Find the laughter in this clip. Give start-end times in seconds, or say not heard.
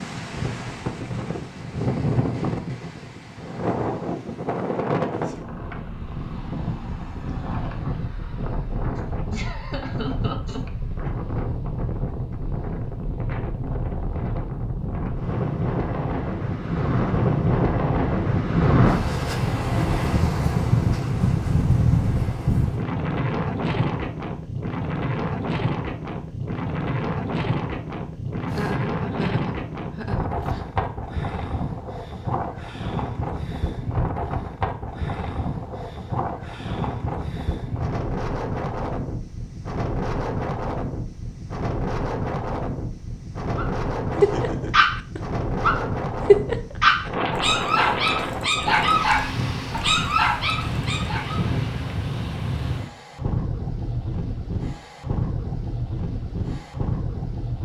9.3-11.2, 28.4-30.6, 44.1-44.9.